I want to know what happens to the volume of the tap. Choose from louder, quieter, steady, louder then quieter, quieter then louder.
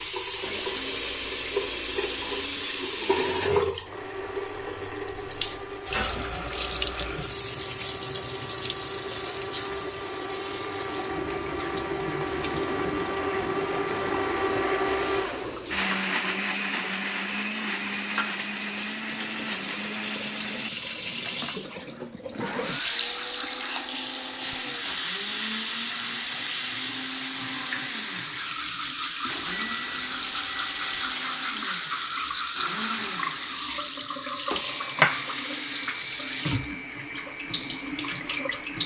quieter then louder.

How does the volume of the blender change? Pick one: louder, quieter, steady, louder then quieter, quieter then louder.
louder then quieter.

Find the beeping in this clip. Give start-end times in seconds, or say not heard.
10.3-11.0, 29.2-31.0.